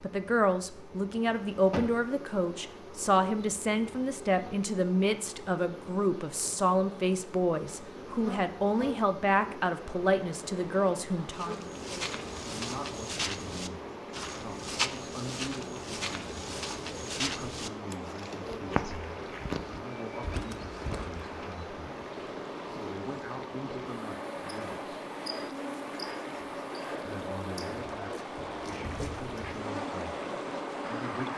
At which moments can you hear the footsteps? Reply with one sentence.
The footsteps can be heard from 11.3 to 21.2 s.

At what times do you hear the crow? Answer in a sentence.
You can't hear the crow here.